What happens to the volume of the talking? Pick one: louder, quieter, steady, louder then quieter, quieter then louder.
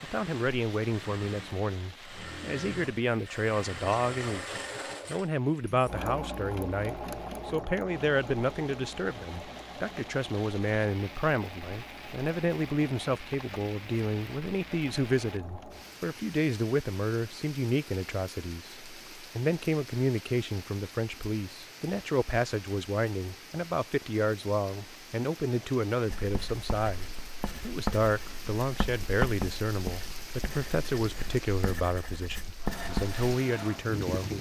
steady.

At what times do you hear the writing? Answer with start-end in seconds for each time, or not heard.
26.1-33.2.